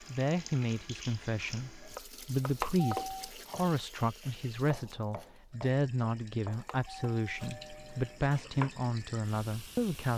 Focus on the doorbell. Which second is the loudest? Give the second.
3 s.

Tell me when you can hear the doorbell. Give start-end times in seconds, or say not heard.
2.5-3.3, 6.5-8.2.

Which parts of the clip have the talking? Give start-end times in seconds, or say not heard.
0.0-10.1.